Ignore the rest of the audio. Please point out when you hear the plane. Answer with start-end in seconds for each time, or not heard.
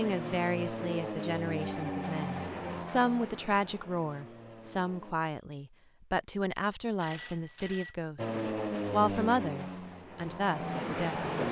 0.0-5.2, 8.2-11.4.